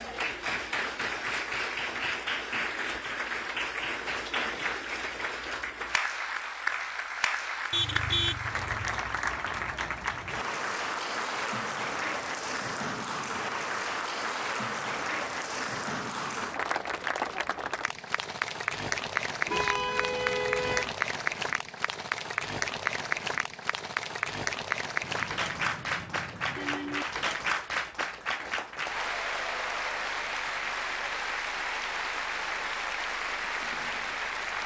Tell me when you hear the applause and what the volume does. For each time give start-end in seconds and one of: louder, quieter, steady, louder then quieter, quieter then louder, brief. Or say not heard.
0.0-34.6 steady.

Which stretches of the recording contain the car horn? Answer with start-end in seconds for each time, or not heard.
7.7-8.9, 19.4-20.9, 25.0-27.1.